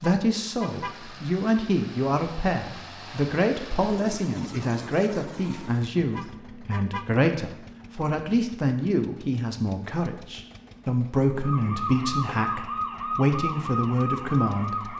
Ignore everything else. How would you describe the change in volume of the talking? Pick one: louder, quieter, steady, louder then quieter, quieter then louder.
steady.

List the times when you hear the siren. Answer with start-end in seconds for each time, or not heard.
11.4-14.9.